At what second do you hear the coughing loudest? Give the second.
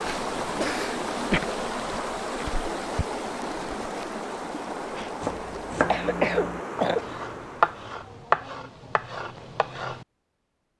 6 s.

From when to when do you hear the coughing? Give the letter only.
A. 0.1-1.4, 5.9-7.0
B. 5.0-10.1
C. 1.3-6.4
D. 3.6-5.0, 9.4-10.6
A.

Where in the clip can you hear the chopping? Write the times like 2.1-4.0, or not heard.
5.0-10.1.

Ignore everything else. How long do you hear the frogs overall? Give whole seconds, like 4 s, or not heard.
not heard.